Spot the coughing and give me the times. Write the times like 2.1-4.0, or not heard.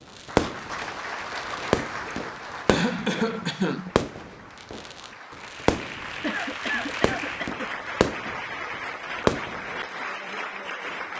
2.0-3.9, 6.2-8.3.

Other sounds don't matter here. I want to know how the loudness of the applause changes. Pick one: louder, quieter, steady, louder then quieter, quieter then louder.
quieter then louder.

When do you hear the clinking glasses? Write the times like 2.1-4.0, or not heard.
not heard.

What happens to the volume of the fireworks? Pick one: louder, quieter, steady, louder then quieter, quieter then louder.
quieter then louder.